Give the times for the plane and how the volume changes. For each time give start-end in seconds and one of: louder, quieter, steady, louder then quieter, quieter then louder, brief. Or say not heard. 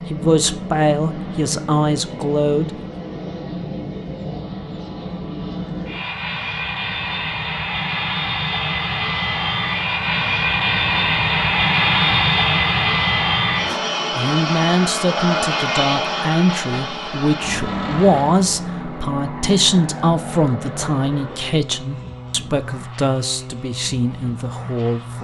0.0-25.2 louder then quieter.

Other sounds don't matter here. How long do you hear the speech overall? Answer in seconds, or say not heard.
14 s.